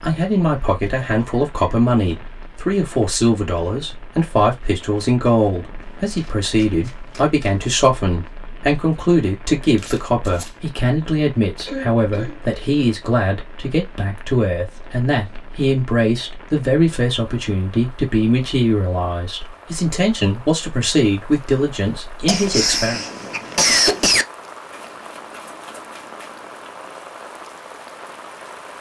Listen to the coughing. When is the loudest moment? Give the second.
24 s.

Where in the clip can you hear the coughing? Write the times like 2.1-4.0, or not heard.
0.6-1.8, 11.7-12.6, 22.2-24.2.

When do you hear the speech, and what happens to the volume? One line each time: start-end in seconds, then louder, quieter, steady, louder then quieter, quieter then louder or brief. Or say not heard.
0.0-23.0 steady.